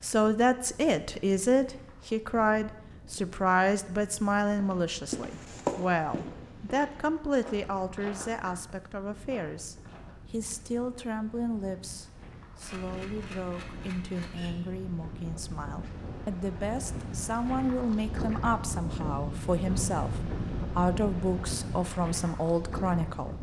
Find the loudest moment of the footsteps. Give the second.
6 s.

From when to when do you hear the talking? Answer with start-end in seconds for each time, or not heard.
0.0-23.3.